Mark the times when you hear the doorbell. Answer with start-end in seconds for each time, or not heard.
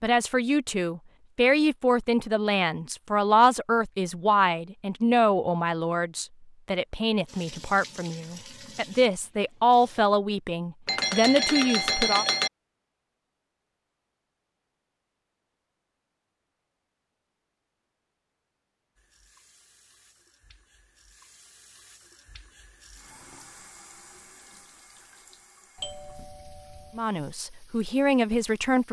10.8-12.5, 25.8-27.1.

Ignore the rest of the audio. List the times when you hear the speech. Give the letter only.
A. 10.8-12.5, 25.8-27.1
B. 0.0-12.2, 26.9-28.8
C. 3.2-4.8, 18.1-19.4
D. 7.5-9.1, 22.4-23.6
B.